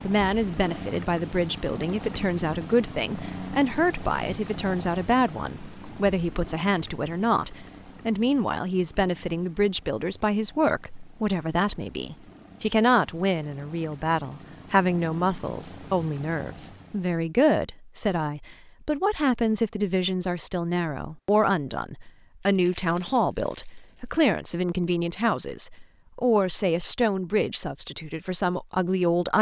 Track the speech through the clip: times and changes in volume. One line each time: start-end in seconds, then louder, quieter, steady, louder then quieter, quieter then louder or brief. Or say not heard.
0.1-29.3 steady.